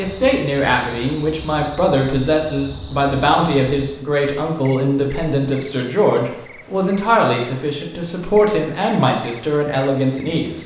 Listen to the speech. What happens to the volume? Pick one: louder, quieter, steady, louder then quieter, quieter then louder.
steady.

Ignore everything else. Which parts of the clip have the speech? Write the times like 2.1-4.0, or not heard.
0.0-10.6.